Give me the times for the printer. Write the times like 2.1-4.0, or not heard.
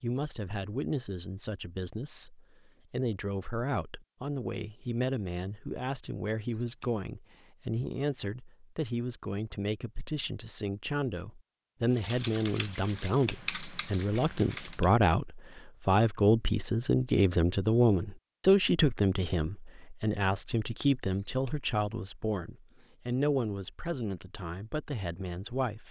not heard.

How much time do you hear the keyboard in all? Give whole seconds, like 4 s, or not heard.
3 s.